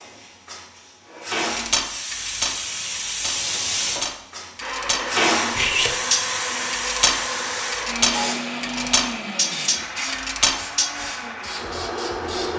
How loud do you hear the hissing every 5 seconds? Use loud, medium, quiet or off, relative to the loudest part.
loud, loud, medium.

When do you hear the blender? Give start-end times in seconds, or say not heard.
4.6-12.5.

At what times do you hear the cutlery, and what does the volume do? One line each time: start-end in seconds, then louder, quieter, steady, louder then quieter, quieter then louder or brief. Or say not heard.
1.5-10.9 louder.